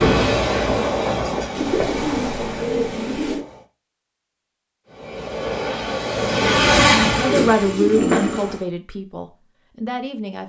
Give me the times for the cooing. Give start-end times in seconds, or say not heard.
1.5-3.5, 7.0-8.6.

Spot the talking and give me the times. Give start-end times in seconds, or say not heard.
7.2-10.4.